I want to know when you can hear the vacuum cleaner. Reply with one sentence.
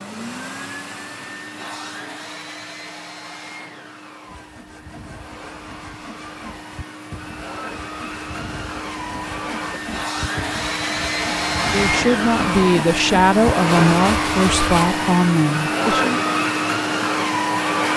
You can hear the vacuum cleaner from 0.0 to 17.9 s.